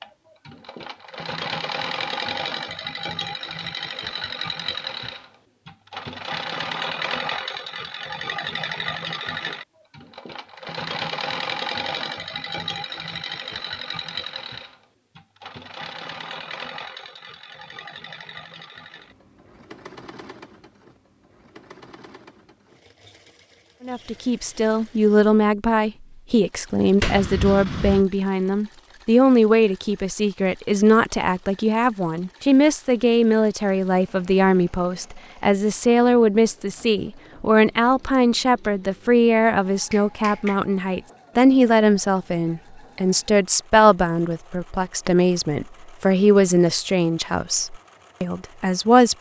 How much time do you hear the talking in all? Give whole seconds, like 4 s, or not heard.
25 s.